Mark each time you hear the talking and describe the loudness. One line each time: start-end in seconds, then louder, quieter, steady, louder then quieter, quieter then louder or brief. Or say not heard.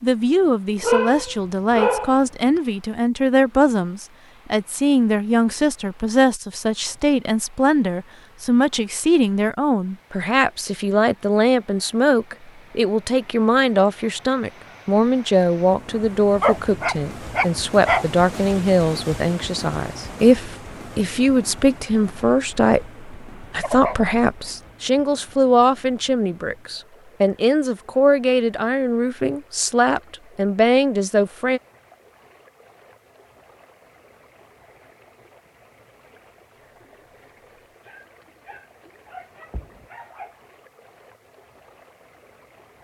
0.0-31.6 steady.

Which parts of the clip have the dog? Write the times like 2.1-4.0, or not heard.
0.8-2.1, 16.4-18.1, 23.6-24.5, 37.9-40.4.